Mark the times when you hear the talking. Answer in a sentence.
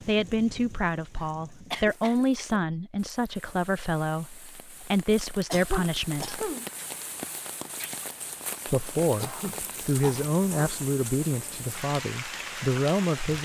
You can hear the talking from 0.1 to 6.5 s and from 8.7 to 13.4 s.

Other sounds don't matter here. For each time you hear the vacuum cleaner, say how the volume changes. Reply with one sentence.
You can't hear the vacuum cleaner here.